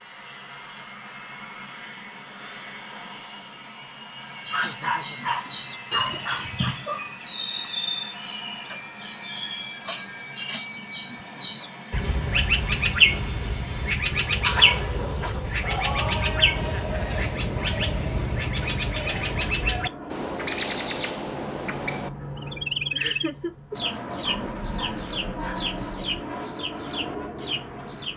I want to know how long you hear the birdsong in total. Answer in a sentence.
You can hear the birdsong for 24 seconds altogether.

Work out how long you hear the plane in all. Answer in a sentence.
The plane can be heard for 28 seconds in total.